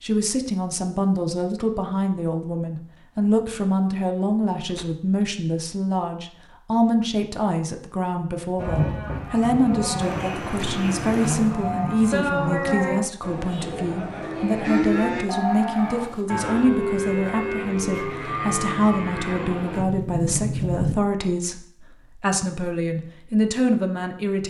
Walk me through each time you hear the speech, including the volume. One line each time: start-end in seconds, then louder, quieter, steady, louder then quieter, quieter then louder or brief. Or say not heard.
0.0-24.4 steady.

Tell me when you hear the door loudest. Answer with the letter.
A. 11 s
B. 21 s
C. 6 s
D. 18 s
B.